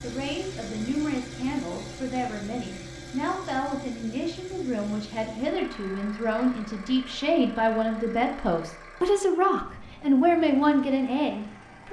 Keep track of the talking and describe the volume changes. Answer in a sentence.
The loudness of the talking goes up.